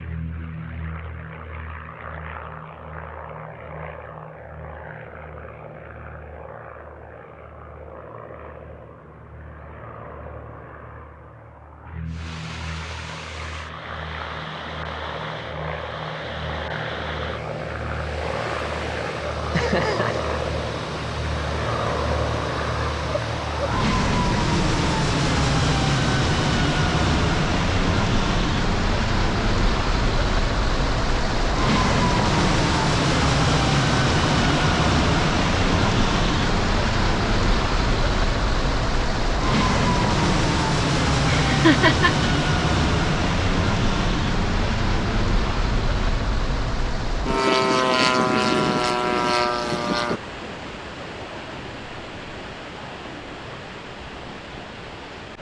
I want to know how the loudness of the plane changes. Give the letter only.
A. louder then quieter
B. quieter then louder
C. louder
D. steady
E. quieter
C.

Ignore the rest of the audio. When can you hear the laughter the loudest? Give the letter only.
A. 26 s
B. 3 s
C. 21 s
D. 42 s
D.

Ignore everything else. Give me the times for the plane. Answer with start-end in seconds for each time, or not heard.
0.0-50.2.